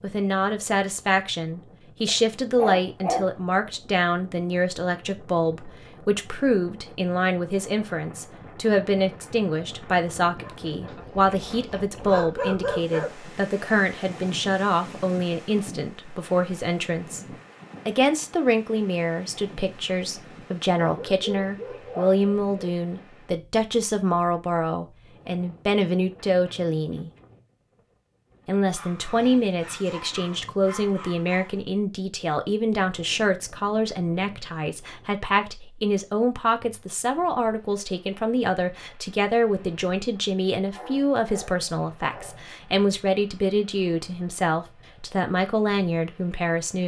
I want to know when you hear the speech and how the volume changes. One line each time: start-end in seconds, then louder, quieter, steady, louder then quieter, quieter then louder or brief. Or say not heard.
0.0-17.2 steady
17.9-27.1 steady
28.4-46.8 steady.